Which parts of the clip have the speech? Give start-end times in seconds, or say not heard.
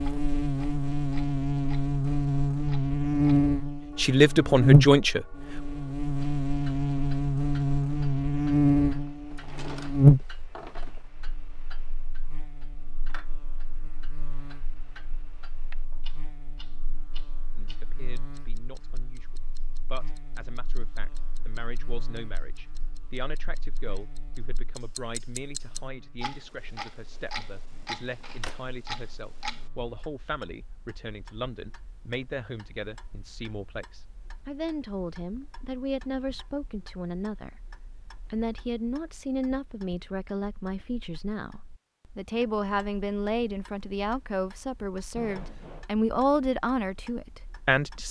4.0-5.2, 17.6-37.5, 38.3-48.0.